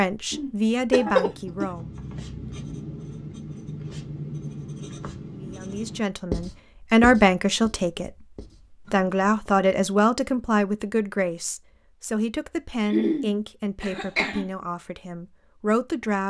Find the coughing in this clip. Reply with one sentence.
You can hear the coughing from 0.3 to 1.6 s and from 12.8 to 14.5 s.